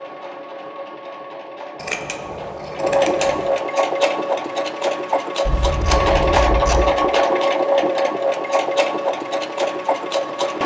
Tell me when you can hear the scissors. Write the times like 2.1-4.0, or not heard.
1.8-3.5, 5.5-7.0.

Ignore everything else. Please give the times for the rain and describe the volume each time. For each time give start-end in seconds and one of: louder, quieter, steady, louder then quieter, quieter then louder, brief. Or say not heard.
not heard.